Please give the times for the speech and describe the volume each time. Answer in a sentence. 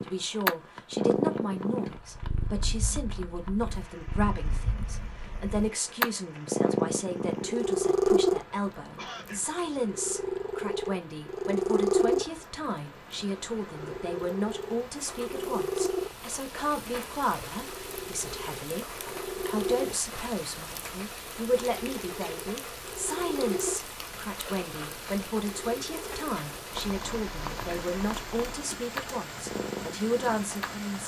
You can hear the speech from 0.1 to 31.0 s, at a steady volume.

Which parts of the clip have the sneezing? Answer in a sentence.
The sneezing can be heard from 8.9 to 9.4 s.